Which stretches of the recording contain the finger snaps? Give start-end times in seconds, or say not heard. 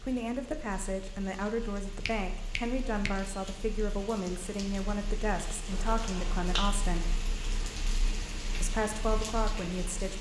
2.0-3.5, 5.7-6.8.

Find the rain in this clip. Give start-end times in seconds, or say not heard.
0.0-10.1.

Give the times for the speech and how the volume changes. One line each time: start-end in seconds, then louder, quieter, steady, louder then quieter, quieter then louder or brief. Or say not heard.
0.0-7.2 steady
8.6-10.1 brief.